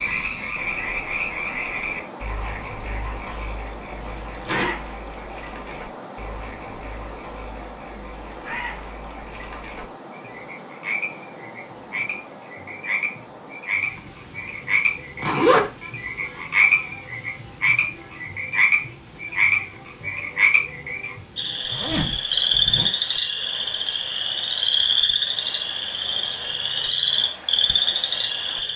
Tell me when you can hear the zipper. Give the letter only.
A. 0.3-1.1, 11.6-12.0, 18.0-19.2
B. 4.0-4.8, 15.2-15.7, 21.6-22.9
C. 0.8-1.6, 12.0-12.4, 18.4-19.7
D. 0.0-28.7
B.